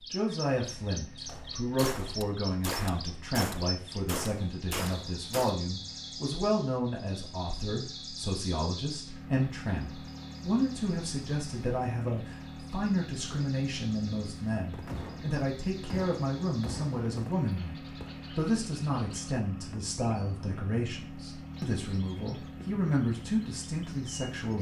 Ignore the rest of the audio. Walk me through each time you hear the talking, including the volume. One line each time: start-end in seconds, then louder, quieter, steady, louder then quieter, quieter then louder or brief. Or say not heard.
0.1-24.5 steady.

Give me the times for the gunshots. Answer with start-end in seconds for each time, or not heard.
1.2-5.5, 14.7-18.3.